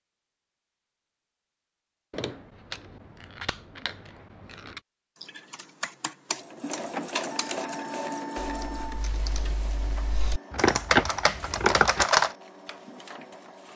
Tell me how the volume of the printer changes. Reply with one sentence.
The volume of the printer goes down.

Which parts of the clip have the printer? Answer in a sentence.
The printer can be heard from 6.3 to 13.7 s.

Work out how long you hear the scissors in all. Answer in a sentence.
The scissors can be heard for 4 seconds in total.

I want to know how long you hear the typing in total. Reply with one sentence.
The typing can be heard for 7 seconds in total.